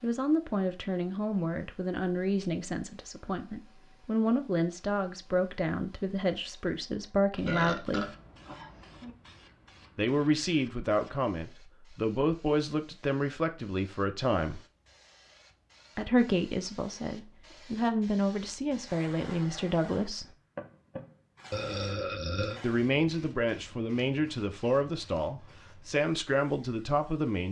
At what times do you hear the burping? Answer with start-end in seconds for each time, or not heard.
7.5-9.2, 21.5-22.6.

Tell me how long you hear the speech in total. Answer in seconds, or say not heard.
22 s.